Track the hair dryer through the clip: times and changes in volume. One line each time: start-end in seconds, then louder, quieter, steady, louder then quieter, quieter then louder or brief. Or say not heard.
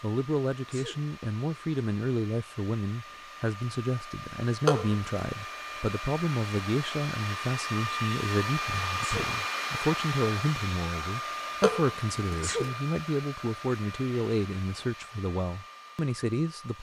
0.0-16.7 louder then quieter.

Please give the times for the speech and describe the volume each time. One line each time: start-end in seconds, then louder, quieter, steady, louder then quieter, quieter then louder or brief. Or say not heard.
0.0-16.7 steady.